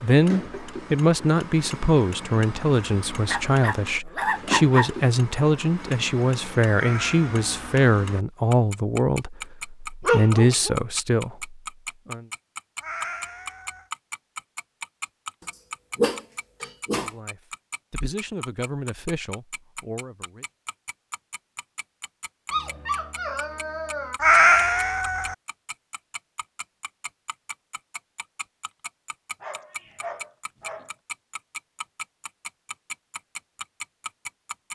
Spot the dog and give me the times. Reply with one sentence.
The dog can be heard from 3.2 to 4.9 s, from 10.0 to 10.8 s, from 15.9 to 17.1 s, from 22.5 to 24.2 s and from 29.4 to 30.9 s.